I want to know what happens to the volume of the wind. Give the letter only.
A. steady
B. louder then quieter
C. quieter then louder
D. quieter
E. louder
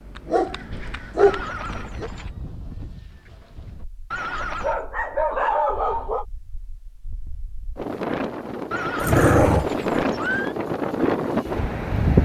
C.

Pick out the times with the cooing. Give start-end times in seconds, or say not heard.
not heard.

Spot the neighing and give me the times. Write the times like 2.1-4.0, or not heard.
1.1-2.3, 4.1-4.8, 8.7-10.6.